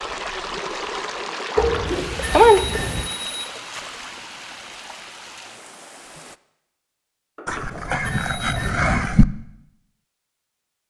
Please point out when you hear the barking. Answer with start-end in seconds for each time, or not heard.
1.6-3.1, 7.5-9.2.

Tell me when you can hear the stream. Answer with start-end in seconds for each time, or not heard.
0.0-6.4.